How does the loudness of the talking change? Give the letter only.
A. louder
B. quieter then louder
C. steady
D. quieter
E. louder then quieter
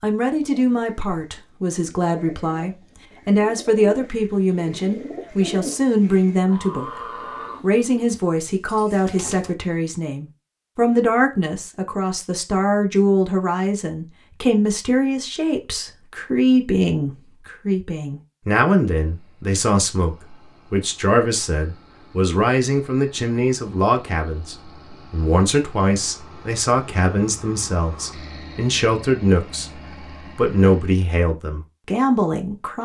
C.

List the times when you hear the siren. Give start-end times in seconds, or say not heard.
not heard.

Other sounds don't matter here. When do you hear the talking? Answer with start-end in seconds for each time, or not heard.
0.0-6.9, 7.6-32.8.